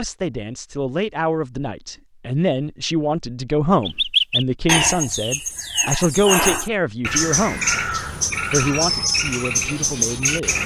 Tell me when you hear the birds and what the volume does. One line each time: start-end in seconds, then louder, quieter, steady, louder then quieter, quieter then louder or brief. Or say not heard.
3.8-10.6 steady.